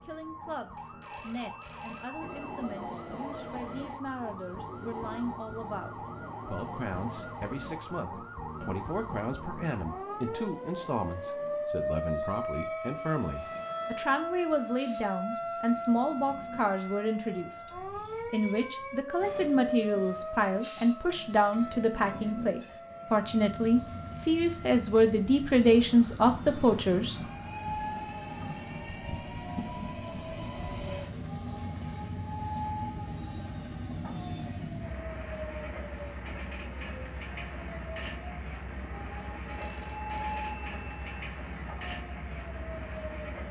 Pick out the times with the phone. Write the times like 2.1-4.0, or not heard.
0.8-2.6, 39.2-41.1.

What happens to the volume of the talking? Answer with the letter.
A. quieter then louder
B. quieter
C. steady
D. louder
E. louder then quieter
D.